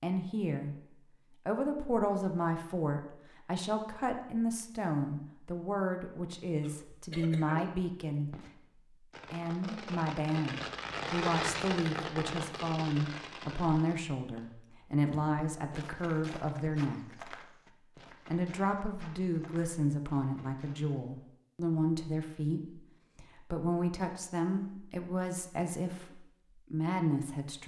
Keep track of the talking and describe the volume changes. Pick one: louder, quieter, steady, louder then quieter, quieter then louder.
steady.